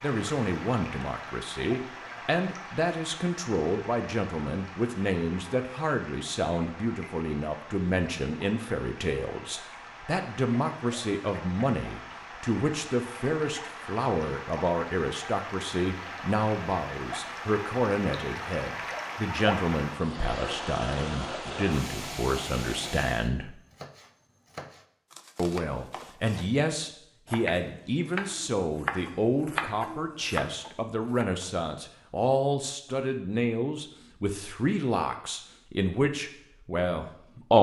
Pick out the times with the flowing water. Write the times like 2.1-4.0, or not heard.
0.0-23.3.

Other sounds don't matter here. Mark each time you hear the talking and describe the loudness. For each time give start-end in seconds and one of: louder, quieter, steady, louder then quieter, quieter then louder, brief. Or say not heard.
0.0-23.6 steady
25.4-37.5 steady.